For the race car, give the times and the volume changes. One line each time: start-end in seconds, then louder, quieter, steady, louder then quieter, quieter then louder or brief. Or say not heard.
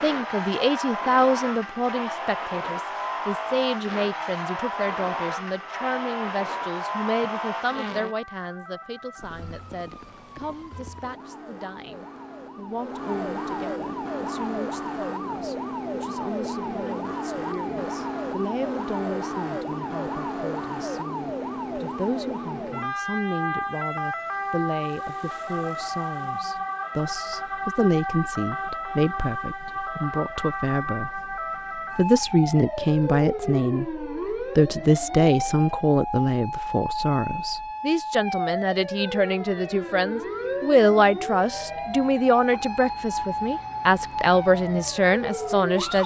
0.0-8.2 steady.